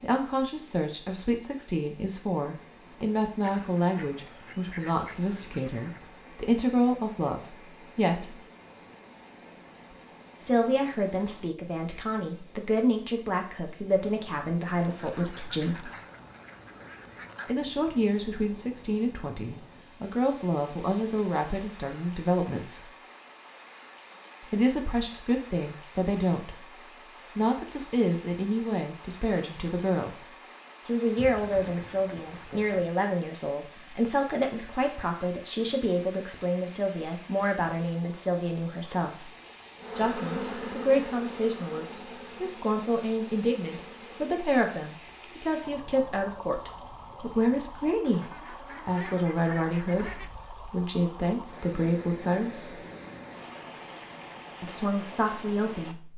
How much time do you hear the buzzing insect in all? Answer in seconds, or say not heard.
5 s.